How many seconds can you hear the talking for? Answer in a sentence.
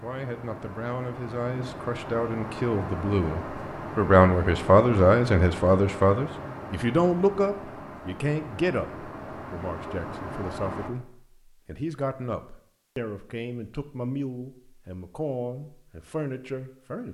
You can hear the talking for 17 seconds altogether.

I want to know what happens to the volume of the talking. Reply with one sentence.
The loudness of the talking goes up, then down.